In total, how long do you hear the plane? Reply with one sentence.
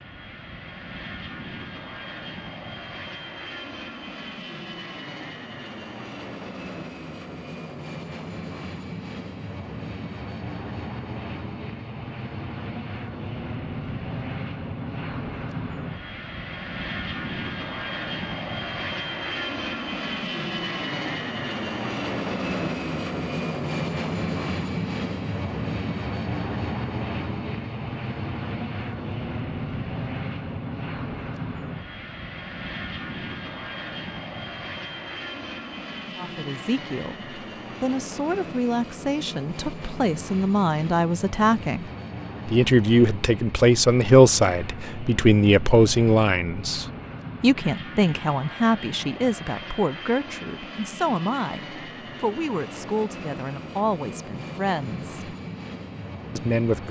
The plane can be heard for 57 seconds in total.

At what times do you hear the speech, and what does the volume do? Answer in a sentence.
The speech can be heard from 36.1 to 41.9 s, getting louder; from 42.5 to 55.2 s, getting quieter; and briefly from 56.4 to 56.8 s.